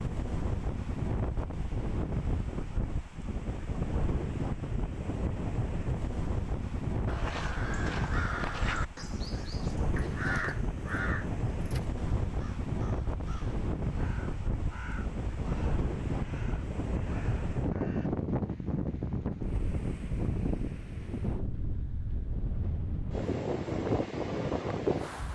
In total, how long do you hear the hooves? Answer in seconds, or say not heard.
not heard.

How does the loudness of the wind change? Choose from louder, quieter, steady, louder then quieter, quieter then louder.
steady.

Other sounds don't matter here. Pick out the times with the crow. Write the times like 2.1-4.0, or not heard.
7.0-18.1.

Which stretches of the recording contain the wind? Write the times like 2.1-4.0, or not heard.
0.0-25.3.